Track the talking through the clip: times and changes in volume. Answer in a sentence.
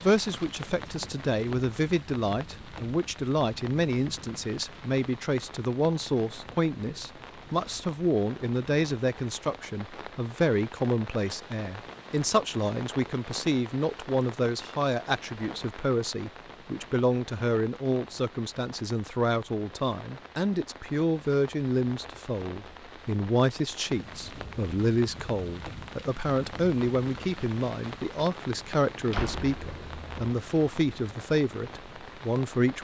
You can hear the talking from 0.0 to 32.7 s, at a steady volume.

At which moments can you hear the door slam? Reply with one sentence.
The door slam can be heard from 29.1 to 30.3 s.